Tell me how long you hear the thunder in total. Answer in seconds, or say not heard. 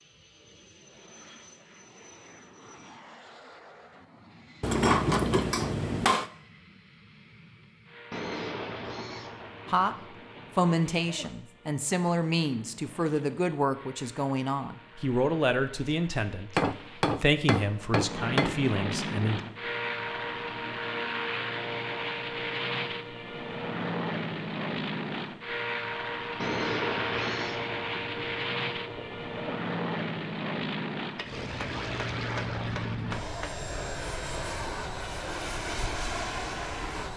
6 s.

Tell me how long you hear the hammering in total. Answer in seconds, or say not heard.
6 s.